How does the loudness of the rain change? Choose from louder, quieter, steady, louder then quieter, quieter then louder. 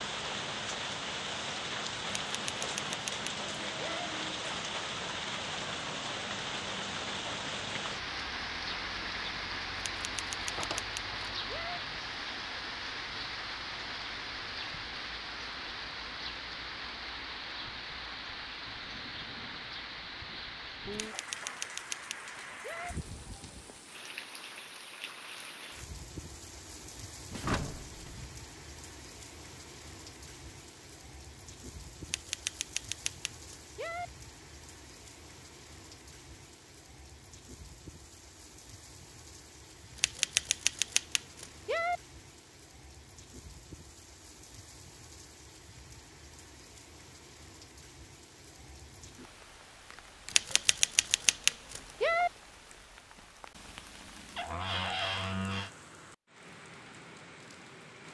quieter.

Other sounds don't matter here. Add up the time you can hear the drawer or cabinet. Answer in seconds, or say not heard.
3 s.